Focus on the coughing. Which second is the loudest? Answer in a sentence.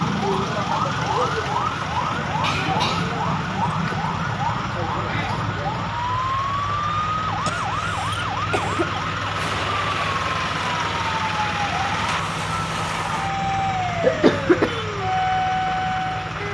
The loudest moment of the coughing is at 14 seconds.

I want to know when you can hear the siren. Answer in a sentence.
The siren can be heard from 0.0 to 16.4 s.